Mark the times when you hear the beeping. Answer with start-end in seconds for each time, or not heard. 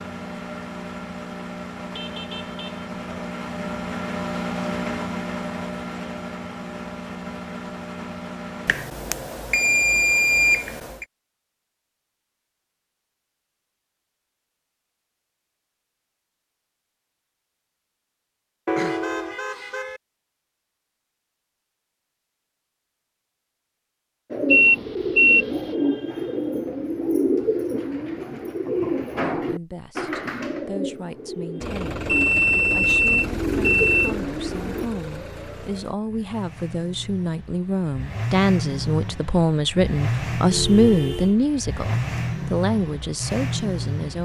8.7-10.7, 24.5-25.4, 32.0-34.1.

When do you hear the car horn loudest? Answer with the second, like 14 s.
19 s.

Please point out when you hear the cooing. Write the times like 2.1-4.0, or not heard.
24.3-34.9.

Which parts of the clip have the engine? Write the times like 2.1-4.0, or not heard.
0.0-8.8, 31.6-44.1.